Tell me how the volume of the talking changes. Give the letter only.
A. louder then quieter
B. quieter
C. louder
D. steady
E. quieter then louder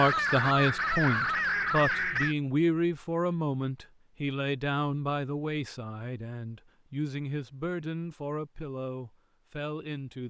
B.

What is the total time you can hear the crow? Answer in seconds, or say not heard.
2 s.